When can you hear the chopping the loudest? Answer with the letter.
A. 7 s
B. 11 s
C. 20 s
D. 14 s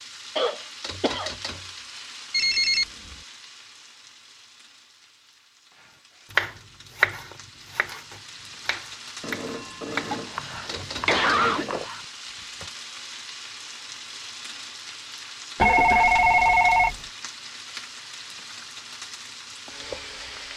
A.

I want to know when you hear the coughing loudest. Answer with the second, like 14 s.
11 s.